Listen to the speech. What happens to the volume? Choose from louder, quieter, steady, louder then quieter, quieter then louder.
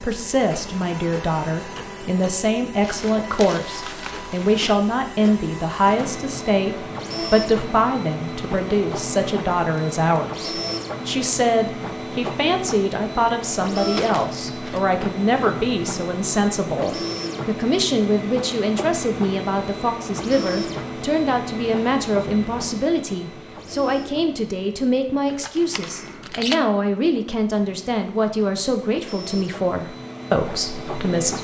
steady.